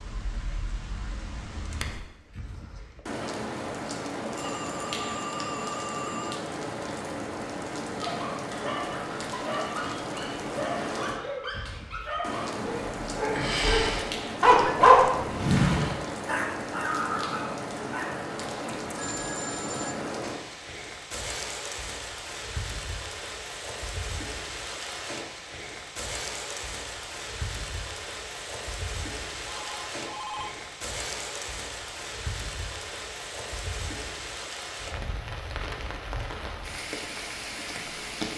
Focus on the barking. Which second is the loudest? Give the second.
15 s.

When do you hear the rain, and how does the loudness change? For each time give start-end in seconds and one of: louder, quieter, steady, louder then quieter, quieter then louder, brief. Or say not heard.
0.0-38.3 steady.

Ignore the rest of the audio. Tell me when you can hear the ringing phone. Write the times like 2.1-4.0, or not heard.
4.3-6.4, 18.9-20.0, 29.5-30.6.